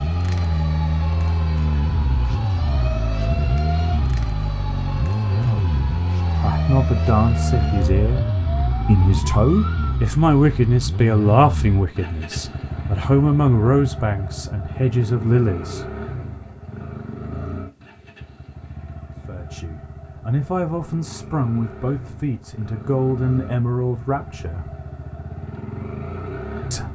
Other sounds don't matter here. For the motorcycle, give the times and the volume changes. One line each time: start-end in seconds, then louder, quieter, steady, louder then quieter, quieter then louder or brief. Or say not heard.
0.0-26.9 quieter.